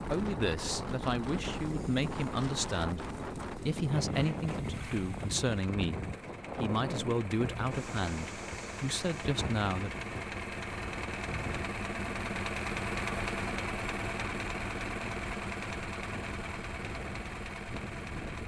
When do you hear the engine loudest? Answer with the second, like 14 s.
13 s.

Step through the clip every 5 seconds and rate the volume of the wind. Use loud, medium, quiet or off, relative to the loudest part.
loud, loud, medium, medium.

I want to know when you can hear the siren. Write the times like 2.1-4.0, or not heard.
not heard.